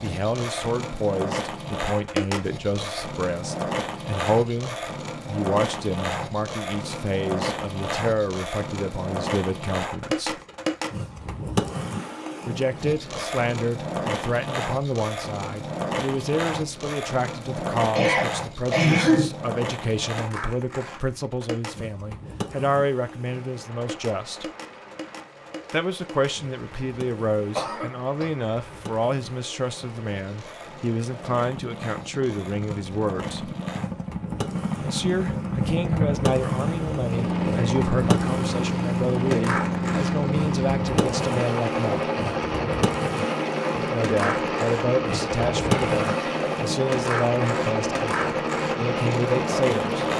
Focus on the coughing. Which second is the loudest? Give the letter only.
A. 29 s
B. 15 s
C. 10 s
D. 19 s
D.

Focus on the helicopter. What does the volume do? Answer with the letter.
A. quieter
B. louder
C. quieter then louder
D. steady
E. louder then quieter
B.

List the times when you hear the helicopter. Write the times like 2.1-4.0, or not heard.
23.2-50.1.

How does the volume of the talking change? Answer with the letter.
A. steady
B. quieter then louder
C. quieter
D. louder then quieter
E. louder
A.